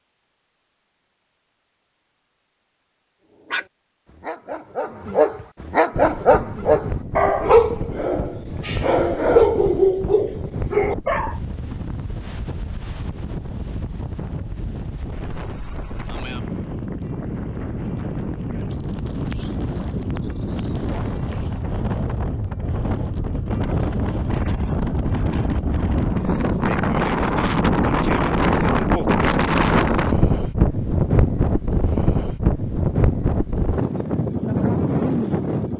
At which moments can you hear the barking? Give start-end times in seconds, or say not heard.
3.5-11.3.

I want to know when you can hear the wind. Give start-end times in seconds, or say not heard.
5.9-35.7.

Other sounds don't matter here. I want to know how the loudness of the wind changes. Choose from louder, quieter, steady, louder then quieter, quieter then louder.
louder.